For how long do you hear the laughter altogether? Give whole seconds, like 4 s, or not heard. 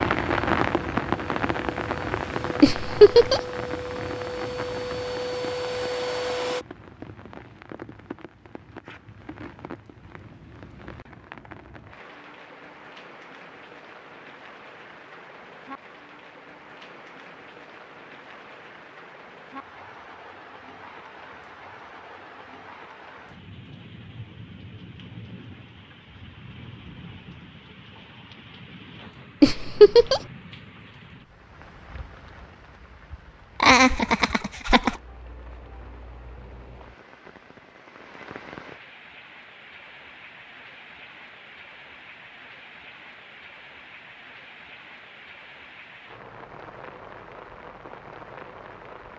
3 s.